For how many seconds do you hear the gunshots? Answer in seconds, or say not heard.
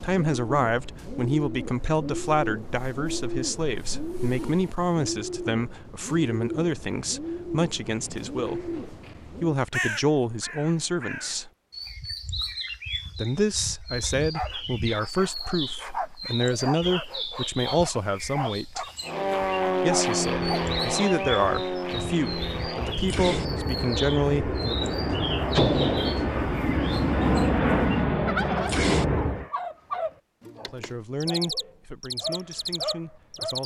2 s.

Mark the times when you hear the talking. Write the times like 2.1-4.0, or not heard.
0.0-11.5, 13.2-18.9, 19.8-24.9, 30.6-33.6.